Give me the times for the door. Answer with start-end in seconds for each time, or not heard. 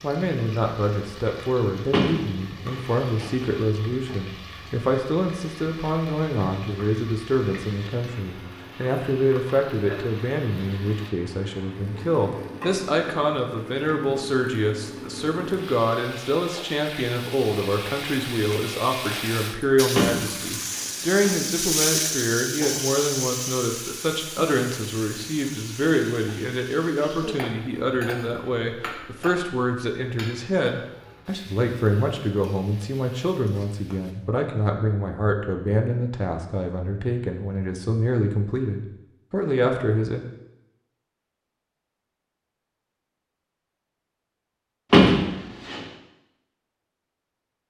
1.9-3.6, 19.9-21.4, 44.9-45.8.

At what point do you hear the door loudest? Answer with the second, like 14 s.
45 s.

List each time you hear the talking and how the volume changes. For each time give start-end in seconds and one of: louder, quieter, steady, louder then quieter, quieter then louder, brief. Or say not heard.
0.0-40.2 steady.